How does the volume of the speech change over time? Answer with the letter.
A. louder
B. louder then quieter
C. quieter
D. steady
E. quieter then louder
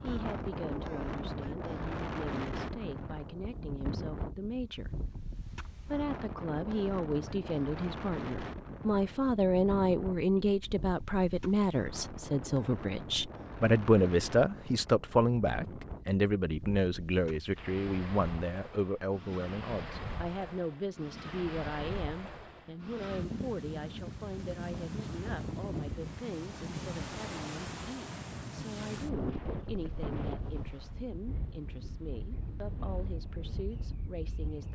B.